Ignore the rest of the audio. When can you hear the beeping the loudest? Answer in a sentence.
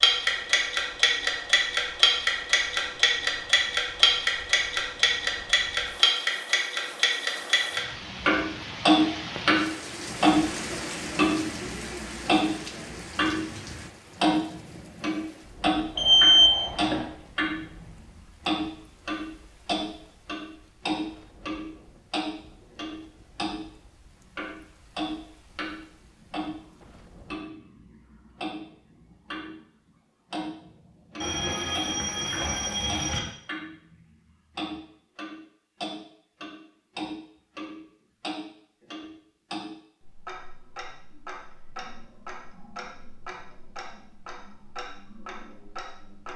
The volume of the beeping peaks at 16 seconds.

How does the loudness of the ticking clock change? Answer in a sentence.
The loudness of the ticking clock goes down.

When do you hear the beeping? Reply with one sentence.
The beeping can be heard from 15.9 to 17.0 s and from 31.2 to 33.2 s.